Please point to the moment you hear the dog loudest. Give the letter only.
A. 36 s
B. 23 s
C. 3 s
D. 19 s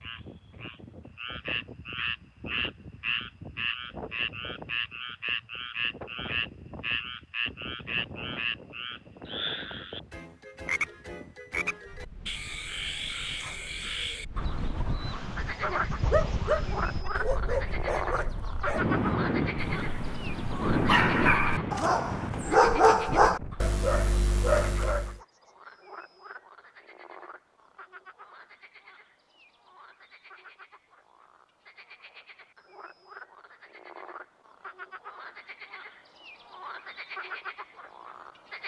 B.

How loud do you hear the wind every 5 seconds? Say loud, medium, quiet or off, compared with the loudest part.
quiet, quiet, quiet, loud, loud, off, off, off.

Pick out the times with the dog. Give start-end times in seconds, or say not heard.
15.6-25.1.